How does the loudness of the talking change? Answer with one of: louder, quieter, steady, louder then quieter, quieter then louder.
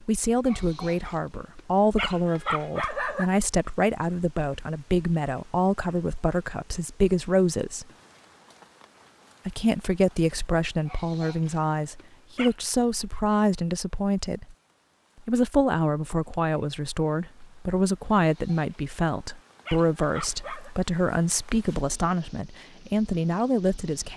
steady.